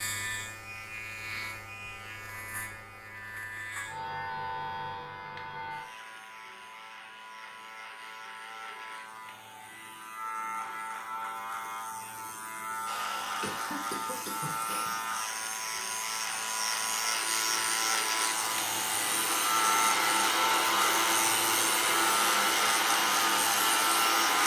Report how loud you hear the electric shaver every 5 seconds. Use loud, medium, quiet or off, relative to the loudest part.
medium, quiet, medium, loud, loud.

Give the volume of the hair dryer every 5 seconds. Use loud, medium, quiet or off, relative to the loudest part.
off, off, quiet, medium, loud.